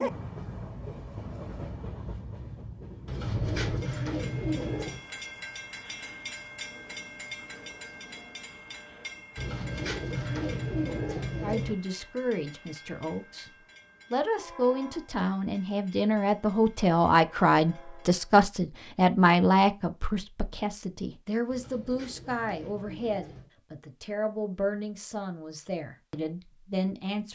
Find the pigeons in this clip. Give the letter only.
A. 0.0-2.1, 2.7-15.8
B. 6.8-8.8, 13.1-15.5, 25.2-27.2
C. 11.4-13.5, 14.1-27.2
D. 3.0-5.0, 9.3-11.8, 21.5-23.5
D.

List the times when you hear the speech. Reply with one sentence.
The speech can be heard from 11.4 to 13.5 s and from 14.1 to 27.2 s.